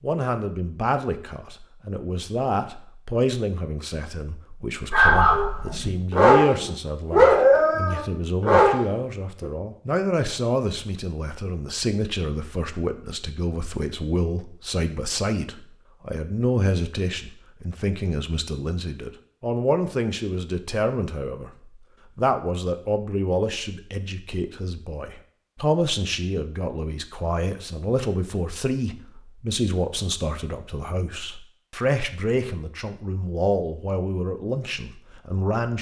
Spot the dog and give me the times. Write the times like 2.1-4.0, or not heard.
4.9-9.4.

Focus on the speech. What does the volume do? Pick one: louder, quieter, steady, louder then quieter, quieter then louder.
steady.